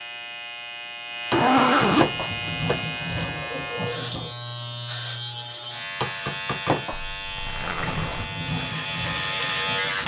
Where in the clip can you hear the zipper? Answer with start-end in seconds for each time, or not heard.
1.3-2.5, 7.0-8.3.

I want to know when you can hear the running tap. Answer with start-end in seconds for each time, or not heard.
2.1-4.3, 7.8-10.0.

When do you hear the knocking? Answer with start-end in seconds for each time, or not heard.
1.3-2.9, 6.0-7.0.